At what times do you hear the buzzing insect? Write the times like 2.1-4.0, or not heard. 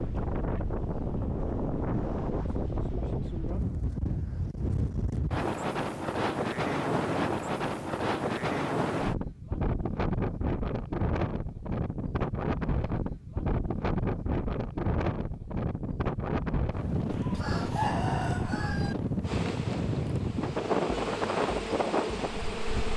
19.2-22.9.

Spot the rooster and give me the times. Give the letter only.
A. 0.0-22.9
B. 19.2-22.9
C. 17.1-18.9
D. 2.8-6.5
C.